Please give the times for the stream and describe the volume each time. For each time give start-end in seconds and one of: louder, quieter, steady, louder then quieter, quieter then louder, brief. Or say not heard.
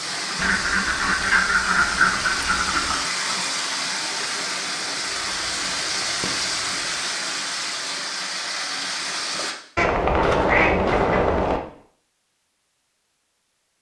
0.0-9.6 steady.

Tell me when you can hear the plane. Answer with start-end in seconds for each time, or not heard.
not heard.